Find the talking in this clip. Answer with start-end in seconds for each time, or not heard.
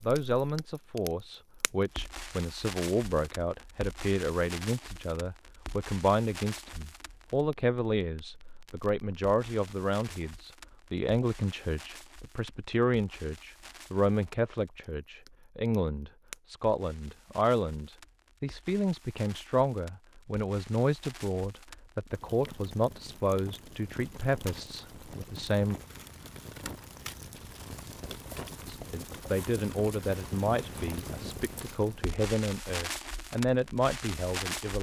0.0-25.8, 28.7-34.7.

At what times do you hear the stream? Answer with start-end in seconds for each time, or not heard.
not heard.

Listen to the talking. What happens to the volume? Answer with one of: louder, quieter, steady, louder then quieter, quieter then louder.
steady.